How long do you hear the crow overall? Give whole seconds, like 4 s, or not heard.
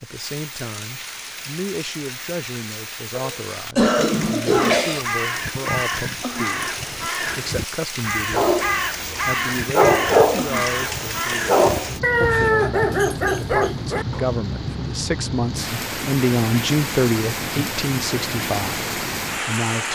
8 s.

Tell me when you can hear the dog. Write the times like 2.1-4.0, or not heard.
8.3-14.2.